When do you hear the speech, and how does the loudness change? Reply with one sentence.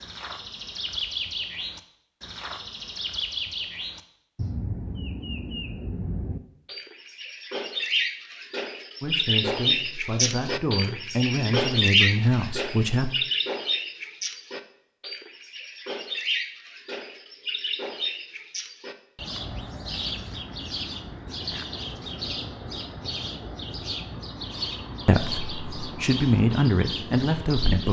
The speech can be heard from 9.0 to 13.1 s, getting louder; and briefly from 25.1 to 27.8 s.